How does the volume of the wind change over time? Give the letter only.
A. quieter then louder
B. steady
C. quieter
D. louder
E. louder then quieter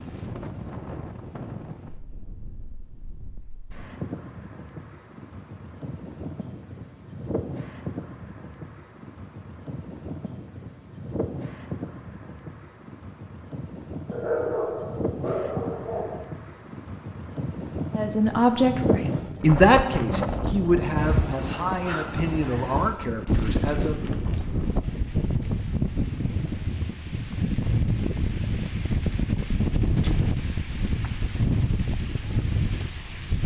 D.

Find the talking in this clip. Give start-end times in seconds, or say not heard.
17.9-24.2.